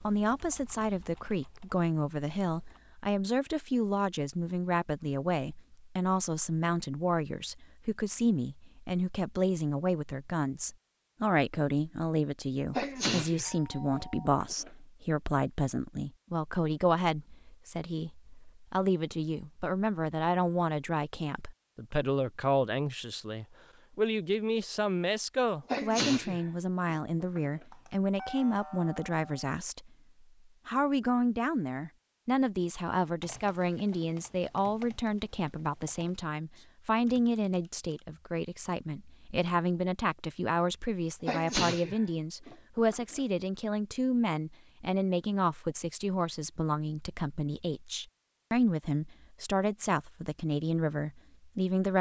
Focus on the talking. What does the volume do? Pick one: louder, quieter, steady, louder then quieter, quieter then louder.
steady.